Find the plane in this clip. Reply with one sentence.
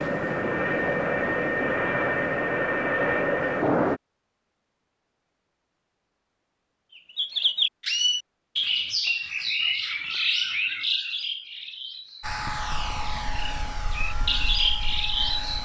The plane can be heard from 0.0 to 4.0 s and from 12.2 to 15.6 s.